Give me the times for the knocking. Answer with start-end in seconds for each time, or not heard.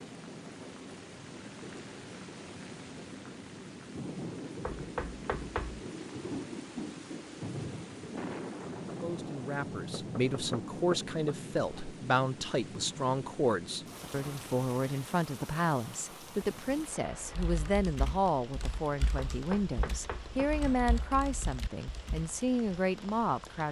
4.7-5.8, 9.9-11.9, 19.3-20.6.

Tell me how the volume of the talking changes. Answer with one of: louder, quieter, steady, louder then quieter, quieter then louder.
steady.